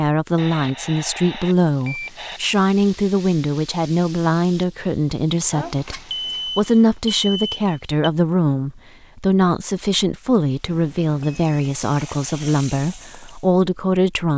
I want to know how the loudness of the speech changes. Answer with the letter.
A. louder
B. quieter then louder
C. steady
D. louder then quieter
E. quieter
C.